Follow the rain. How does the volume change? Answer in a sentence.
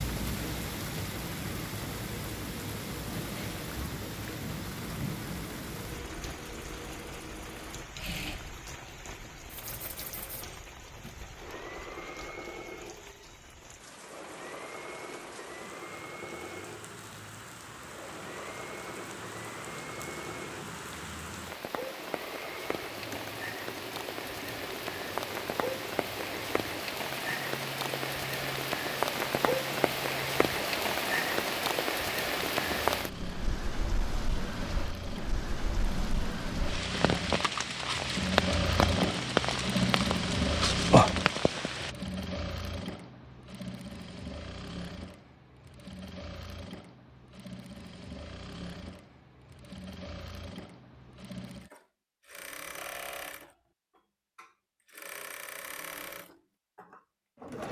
The volume of the rain goes down, then up.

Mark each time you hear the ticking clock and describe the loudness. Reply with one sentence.
You can't hear the ticking clock here.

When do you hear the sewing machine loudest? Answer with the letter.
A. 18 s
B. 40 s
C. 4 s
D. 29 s
B.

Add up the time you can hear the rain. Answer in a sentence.
The rain can be heard for 42 seconds in total.